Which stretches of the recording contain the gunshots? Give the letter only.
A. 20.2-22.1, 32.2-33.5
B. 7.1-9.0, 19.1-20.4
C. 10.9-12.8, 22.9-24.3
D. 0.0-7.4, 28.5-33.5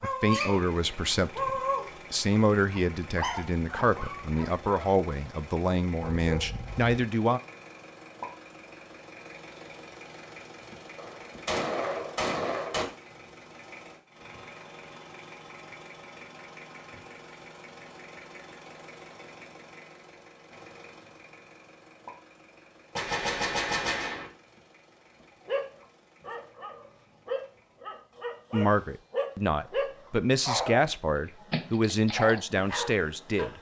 C.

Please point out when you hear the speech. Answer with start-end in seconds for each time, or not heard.
0.0-7.4, 28.5-33.5.